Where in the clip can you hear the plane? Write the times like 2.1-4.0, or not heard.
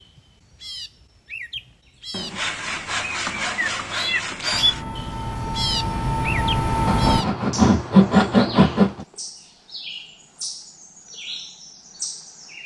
4.5-7.2.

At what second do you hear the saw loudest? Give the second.
8 s.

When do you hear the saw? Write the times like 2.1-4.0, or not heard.
2.1-4.8, 6.8-9.1.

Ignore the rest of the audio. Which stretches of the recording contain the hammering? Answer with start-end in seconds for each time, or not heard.
not heard.